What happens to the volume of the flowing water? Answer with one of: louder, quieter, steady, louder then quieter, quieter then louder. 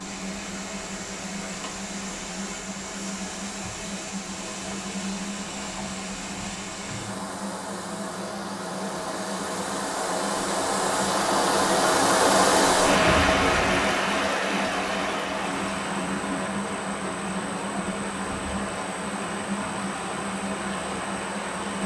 louder then quieter.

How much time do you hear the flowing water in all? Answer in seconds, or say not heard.
22 s.